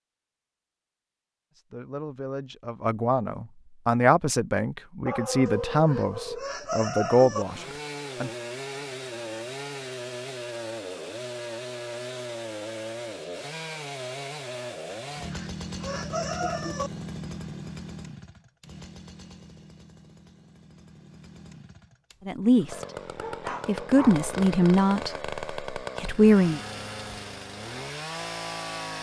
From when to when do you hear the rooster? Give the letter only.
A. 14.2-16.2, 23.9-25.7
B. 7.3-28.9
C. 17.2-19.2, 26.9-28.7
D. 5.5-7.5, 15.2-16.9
D.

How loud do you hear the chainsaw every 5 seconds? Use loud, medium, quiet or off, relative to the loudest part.
off, loud, loud, loud, loud, loud.